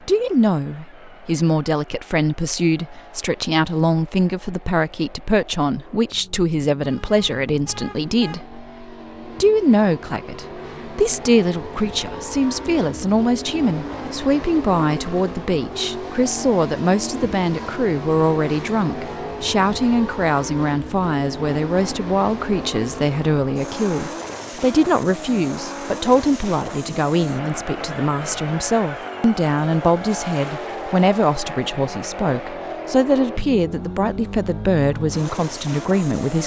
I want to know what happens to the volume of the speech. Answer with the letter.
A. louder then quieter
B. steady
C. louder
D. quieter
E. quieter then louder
B.